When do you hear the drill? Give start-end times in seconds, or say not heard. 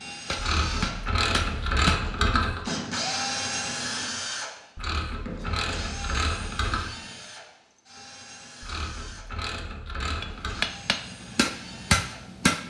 0.0-12.6.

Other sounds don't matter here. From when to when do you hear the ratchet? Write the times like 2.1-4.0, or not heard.
0.3-2.6, 4.8-6.9, 8.6-10.7.